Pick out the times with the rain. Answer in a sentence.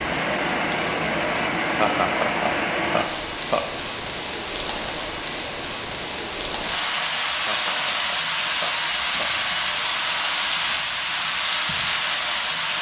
You can hear the rain from 0.0 to 12.7 s.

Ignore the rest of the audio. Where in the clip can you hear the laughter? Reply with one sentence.
The laughter can be heard from 1.8 to 3.6 s and from 7.4 to 9.3 s.